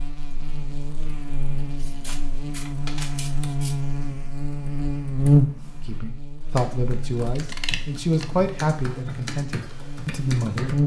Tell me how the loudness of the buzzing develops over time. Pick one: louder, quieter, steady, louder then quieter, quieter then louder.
louder then quieter.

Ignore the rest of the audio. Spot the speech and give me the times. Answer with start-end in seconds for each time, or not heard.
5.8-10.8.